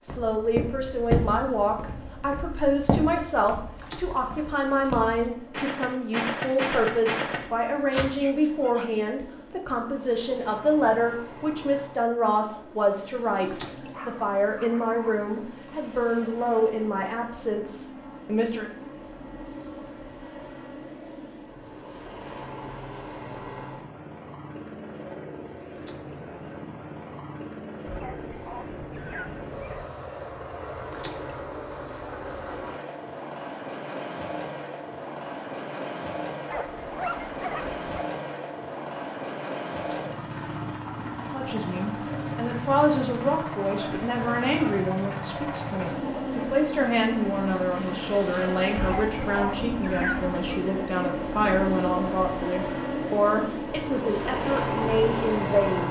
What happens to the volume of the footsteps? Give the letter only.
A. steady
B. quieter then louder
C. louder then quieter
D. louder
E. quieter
B.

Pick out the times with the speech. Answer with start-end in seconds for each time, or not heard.
0.0-18.7, 41.3-55.8.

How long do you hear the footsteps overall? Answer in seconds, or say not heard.
8 s.